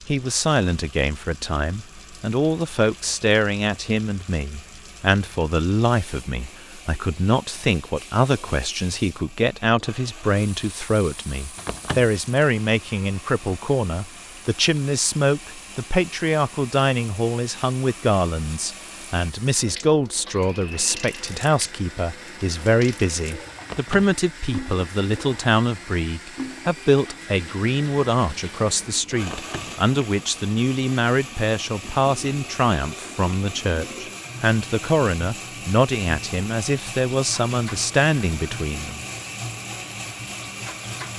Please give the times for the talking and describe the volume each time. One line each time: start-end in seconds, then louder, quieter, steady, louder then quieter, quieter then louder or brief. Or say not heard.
0.1-39.0 steady.